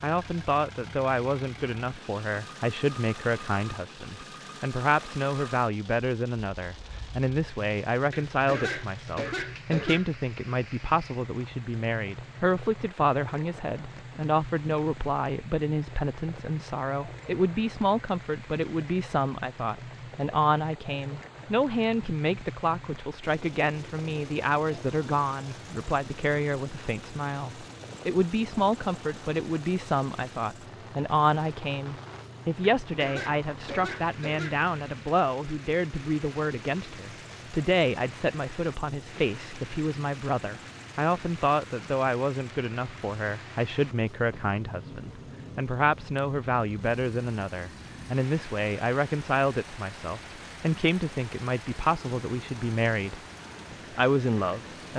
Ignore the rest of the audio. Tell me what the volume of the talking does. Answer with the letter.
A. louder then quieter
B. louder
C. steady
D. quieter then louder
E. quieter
C.